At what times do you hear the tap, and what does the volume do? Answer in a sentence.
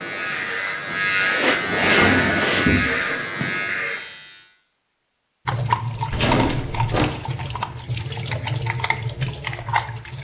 You can hear the tap from 5.5 to 10.1 s, at a steady volume.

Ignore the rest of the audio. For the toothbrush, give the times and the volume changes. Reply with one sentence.
You can't hear the toothbrush here.